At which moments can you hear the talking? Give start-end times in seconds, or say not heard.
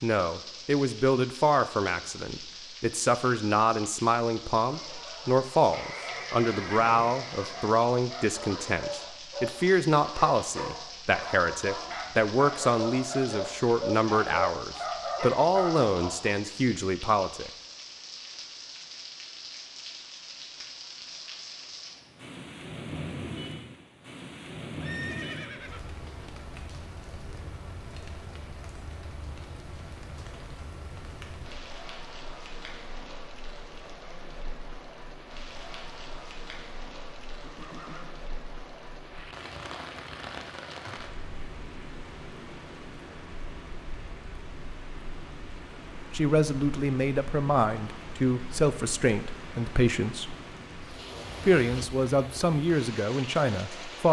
0.0-17.5, 46.1-50.4, 51.5-54.0.